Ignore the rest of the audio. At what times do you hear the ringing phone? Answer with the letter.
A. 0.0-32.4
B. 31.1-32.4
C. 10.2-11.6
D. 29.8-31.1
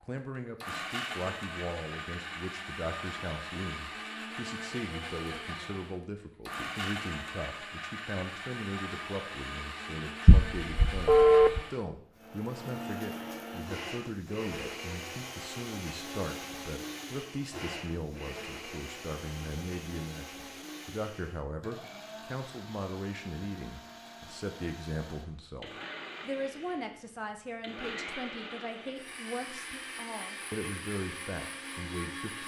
C.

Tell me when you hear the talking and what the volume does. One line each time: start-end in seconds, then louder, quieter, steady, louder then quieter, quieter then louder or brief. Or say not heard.
0.0-32.4 steady.